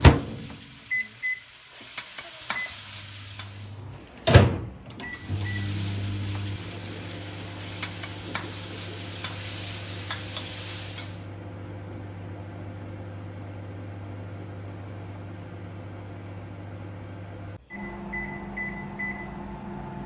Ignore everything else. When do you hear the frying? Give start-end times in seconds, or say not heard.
0.0-3.9, 5.1-11.2.